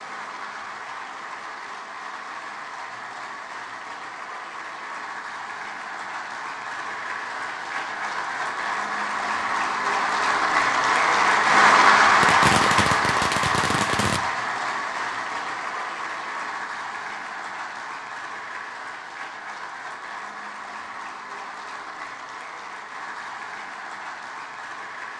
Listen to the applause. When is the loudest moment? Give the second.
12 s.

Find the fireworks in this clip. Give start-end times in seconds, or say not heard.
12.2-14.2.